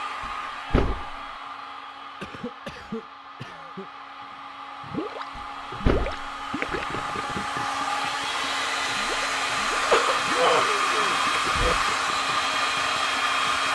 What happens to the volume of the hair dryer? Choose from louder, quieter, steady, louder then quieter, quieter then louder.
louder.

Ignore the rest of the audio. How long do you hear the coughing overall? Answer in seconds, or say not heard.
4 s.